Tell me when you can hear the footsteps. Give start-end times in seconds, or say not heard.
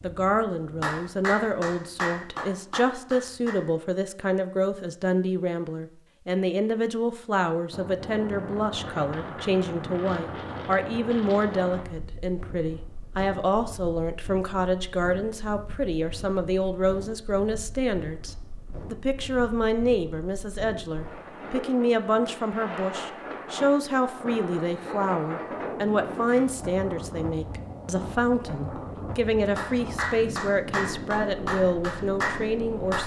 not heard.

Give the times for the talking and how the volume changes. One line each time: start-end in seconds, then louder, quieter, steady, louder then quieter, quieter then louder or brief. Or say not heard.
0.0-33.0 steady.